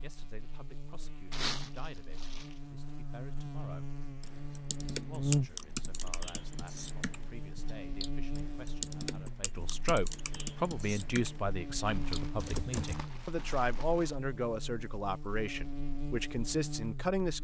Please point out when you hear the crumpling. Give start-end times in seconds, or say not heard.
1.3-2.6, 11.8-14.2.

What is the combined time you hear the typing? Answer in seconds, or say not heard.
9 s.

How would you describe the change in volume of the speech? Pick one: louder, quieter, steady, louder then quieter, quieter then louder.
louder.